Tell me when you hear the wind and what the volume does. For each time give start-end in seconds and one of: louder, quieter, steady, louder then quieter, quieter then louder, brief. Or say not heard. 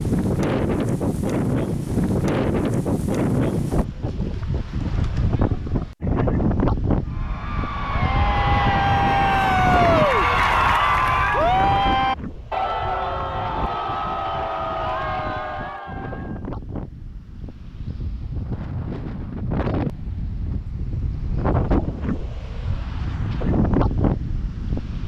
0.0-25.0 quieter then louder.